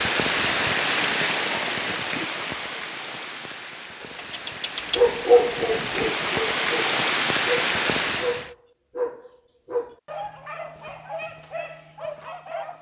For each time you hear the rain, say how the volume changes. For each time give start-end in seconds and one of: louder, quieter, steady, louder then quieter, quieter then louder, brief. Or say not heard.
0.0-8.5 quieter then louder.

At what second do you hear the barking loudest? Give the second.
5 s.